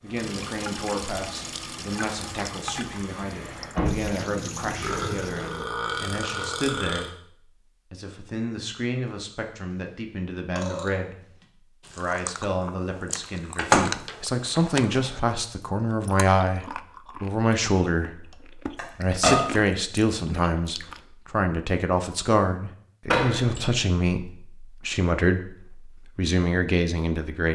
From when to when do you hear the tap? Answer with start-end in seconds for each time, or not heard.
0.1-5.7.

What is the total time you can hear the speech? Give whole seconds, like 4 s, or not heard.
26 s.